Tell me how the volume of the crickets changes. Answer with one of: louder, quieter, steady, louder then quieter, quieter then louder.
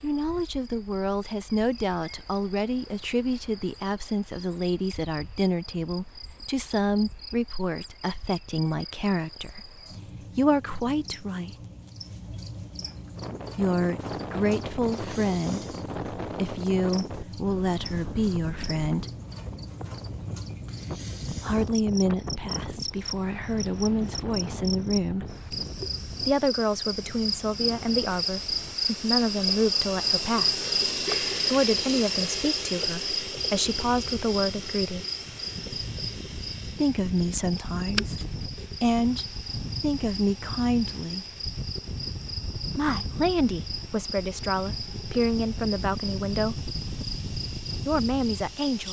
louder then quieter.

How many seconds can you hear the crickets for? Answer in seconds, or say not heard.
49 s.